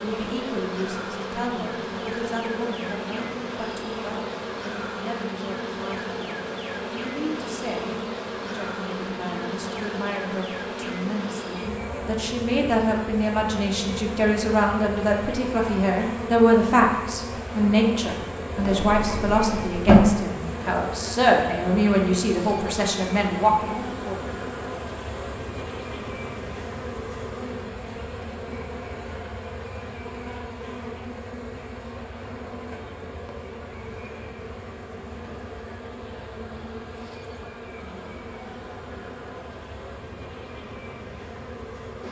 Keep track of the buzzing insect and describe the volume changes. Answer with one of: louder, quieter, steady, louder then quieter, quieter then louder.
quieter.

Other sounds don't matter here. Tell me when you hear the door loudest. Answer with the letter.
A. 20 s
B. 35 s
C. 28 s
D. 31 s
A.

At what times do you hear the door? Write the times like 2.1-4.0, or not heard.
18.6-20.0.